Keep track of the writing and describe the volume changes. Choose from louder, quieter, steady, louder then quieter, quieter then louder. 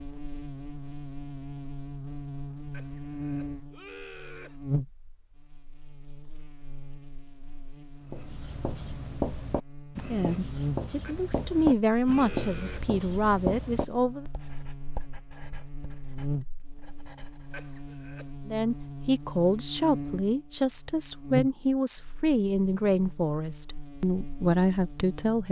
quieter.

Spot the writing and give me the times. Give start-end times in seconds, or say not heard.
8.1-17.7.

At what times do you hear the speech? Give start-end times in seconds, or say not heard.
10.1-14.2, 18.4-25.4.